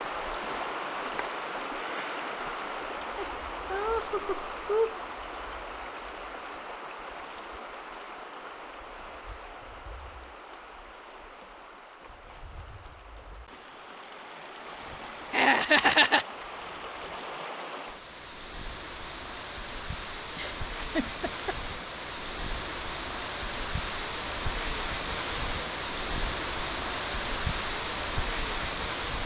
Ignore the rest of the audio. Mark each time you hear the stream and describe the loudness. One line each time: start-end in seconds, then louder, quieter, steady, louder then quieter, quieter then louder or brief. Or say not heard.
0.0-29.2 quieter then louder.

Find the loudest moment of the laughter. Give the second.
16 s.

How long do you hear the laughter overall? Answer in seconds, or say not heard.
4 s.